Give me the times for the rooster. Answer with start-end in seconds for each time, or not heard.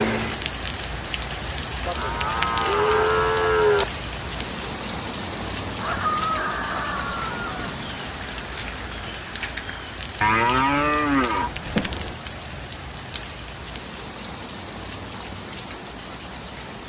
5.8-7.8.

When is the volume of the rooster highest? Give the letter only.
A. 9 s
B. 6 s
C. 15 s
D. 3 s
B.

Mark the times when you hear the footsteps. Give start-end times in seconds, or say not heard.
not heard.